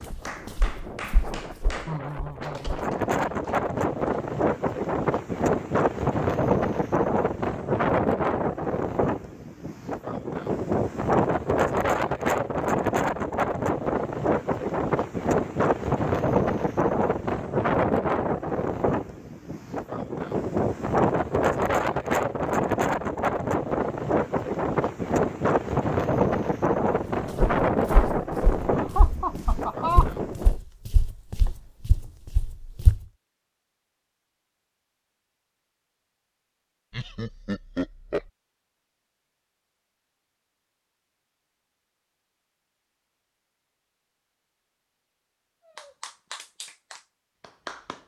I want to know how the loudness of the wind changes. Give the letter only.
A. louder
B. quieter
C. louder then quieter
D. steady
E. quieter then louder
D.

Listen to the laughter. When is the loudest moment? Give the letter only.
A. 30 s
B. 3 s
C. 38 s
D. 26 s
A.